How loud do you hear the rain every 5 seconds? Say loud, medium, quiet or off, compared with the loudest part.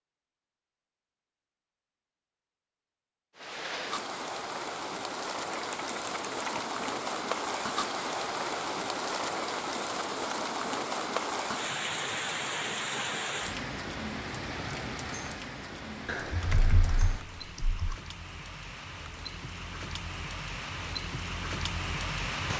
loud, loud, loud, medium, loud.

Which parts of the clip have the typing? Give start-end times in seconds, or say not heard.
5.5-6.9, 16.1-17.9.